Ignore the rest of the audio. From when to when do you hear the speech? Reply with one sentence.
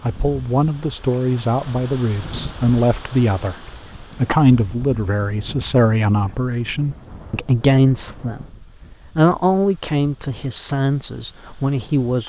The speech can be heard from 0.0 to 3.5 s, from 4.2 to 8.4 s and from 9.2 to 12.2 s.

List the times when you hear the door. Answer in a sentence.
You can't hear the door here.